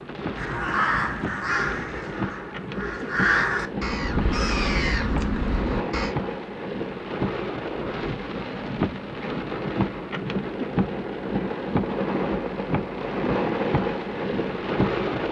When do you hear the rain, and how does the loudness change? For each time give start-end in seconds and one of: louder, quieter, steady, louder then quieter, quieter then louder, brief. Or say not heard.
0.0-15.2 louder.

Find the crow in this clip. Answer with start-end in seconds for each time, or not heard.
0.3-6.2.